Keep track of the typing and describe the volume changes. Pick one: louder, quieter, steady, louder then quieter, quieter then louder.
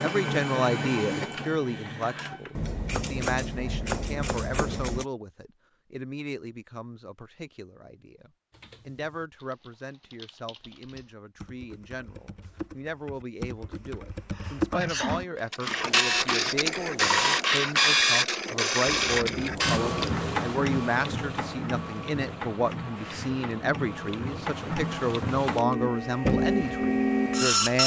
louder.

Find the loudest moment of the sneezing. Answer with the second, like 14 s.
15 s.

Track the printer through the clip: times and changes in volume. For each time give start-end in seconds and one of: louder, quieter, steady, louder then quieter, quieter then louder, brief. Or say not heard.
0.0-2.7 brief
15.5-27.8 quieter then louder.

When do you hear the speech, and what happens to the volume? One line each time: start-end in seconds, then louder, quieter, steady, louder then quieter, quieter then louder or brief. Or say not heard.
0.0-27.8 quieter then louder.